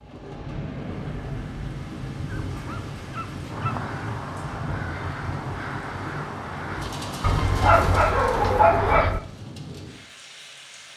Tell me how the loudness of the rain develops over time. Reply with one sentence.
The volume of the rain goes down.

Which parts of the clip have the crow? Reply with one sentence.
You can hear the crow from 3.5 to 9.2 s.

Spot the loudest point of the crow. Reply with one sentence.
The loudest moment of the crow is at 9 seconds.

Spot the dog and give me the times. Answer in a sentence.
You can hear the dog from 2.5 to 3.8 s and from 7.2 to 9.2 s.